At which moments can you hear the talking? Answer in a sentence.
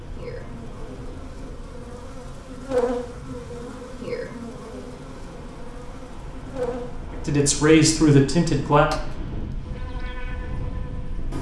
The talking can be heard from 7.1 to 8.9 s.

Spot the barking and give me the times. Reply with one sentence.
You can't hear the barking here.